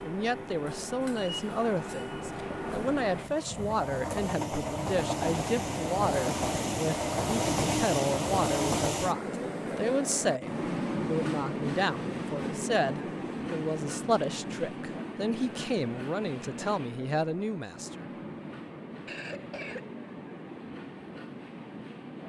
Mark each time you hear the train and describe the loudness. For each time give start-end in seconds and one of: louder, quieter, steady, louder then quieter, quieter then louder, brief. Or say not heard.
0.0-22.2 louder then quieter.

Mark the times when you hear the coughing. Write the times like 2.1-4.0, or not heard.
19.1-19.9.